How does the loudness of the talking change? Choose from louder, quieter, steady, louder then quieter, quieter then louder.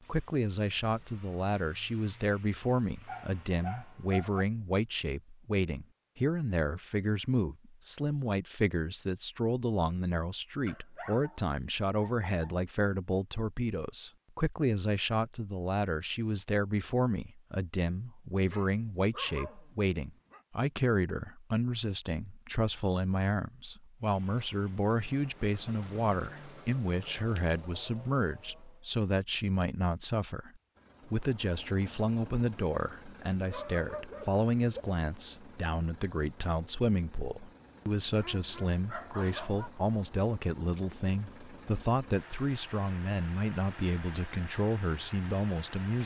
steady.